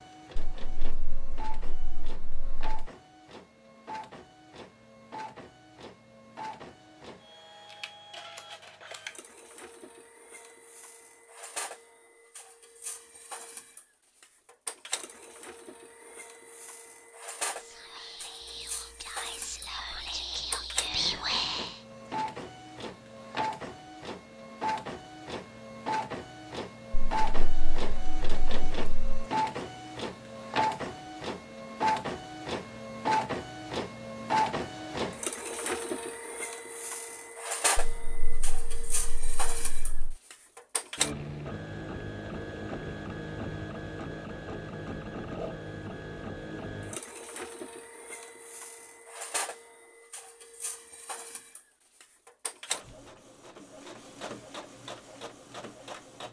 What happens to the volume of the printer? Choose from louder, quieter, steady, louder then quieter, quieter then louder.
louder then quieter.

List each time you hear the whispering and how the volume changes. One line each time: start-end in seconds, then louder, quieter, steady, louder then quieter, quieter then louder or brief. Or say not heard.
17.4-21.8 louder.